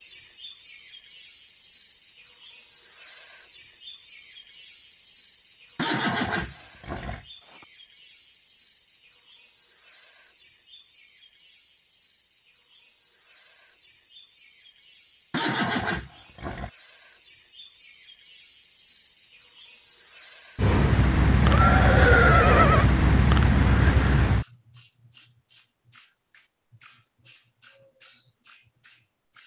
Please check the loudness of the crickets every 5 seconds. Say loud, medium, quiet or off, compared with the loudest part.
medium, medium, quiet, medium, medium, loud.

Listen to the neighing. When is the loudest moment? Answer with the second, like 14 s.
22 s.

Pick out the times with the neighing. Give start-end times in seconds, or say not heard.
5.8-7.7, 15.3-16.7, 21.4-22.9.